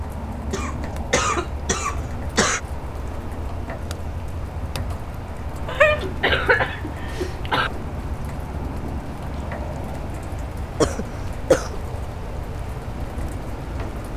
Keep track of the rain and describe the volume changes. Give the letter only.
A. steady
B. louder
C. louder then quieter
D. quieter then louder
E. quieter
A.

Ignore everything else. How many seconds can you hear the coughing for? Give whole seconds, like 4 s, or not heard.
5 s.